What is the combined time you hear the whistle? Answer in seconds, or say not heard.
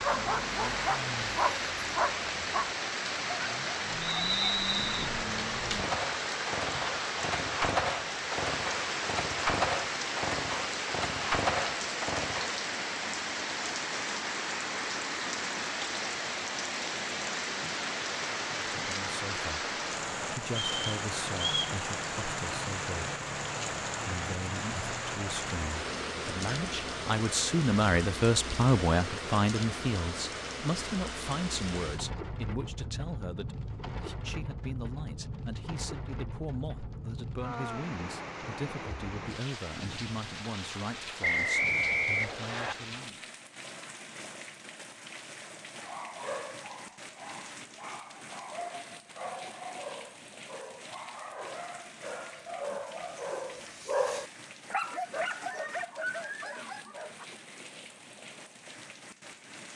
4 s.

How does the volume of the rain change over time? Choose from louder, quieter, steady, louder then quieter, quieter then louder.
quieter.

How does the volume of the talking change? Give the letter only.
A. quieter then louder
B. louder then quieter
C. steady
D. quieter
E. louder
B.